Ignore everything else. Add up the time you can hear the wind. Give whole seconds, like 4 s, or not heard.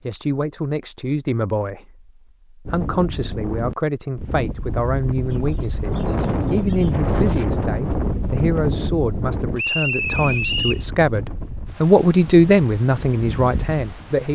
12 s.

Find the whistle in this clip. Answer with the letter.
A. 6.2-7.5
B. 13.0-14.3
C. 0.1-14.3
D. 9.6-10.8
D.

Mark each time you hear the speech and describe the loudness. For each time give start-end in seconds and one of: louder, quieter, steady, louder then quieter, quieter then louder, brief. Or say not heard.
0.1-14.3 louder.